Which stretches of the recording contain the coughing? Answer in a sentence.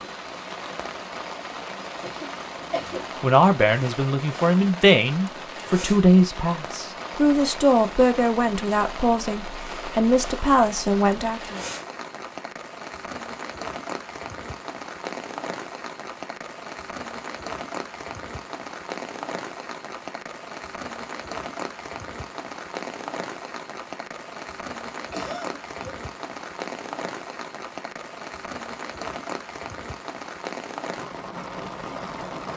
You can hear the coughing from 1.7 to 3.0 s and from 25.1 to 26.0 s.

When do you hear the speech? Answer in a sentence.
The speech can be heard from 2.9 to 11.6 s.